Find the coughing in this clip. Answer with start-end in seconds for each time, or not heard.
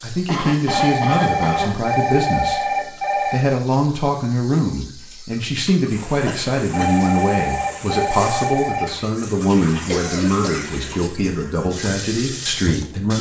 0.2-1.9, 6.2-6.9, 9.8-10.8.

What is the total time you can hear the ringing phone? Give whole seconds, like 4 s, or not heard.
5 s.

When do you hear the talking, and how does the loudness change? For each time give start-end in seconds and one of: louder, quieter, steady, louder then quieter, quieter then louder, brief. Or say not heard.
0.0-2.6 brief
3.2-13.1 steady.